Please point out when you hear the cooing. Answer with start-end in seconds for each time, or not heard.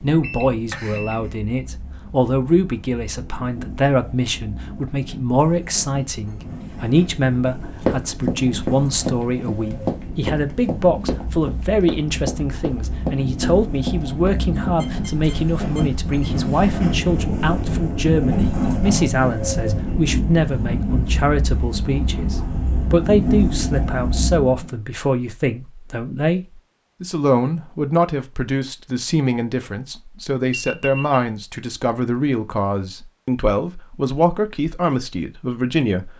not heard.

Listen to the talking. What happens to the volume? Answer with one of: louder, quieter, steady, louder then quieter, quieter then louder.
steady.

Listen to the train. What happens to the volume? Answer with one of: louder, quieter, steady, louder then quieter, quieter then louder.
louder.